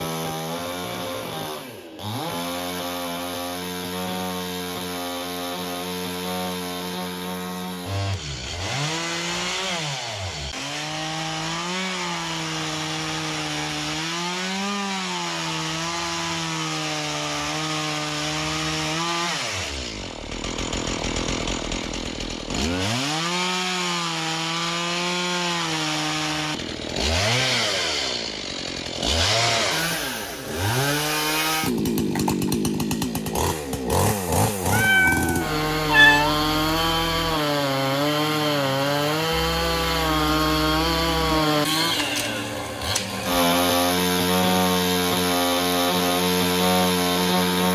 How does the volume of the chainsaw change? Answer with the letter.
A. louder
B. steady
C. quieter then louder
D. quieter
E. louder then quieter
A.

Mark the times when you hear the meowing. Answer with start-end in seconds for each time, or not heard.
34.7-36.4.